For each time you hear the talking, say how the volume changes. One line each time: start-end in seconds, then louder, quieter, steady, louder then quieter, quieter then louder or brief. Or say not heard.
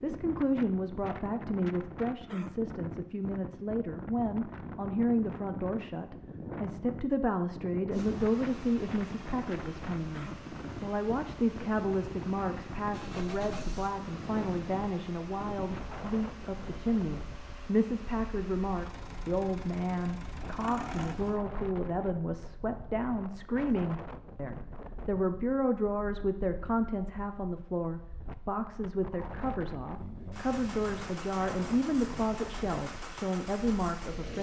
0.0-34.3 steady.